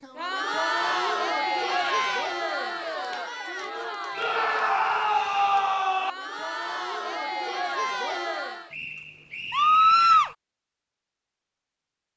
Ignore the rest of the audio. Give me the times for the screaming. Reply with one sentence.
The screaming can be heard from 1.6 to 2.2 s, from 4.2 to 6.1 s and from 9.5 to 10.3 s.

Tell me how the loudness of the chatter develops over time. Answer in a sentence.
The volume of the chatter goes down, then up.